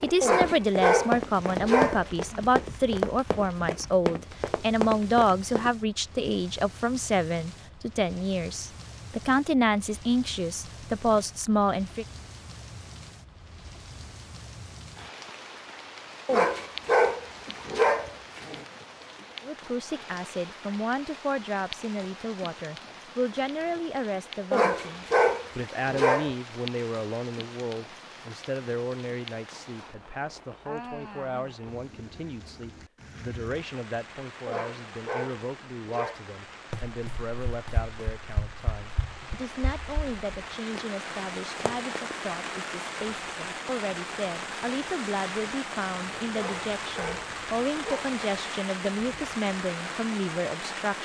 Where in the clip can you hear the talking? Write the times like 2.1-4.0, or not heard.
0.0-12.1, 19.4-51.0.